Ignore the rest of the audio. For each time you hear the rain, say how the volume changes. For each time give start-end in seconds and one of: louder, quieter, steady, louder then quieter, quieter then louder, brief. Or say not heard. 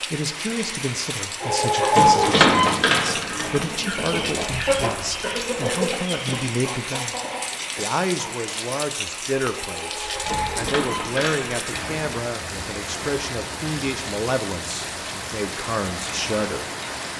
0.0-17.1 steady.